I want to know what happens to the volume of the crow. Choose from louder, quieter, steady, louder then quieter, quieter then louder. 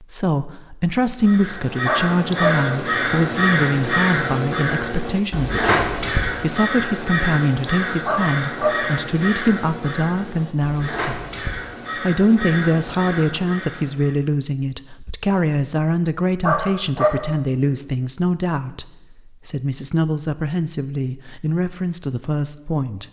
quieter.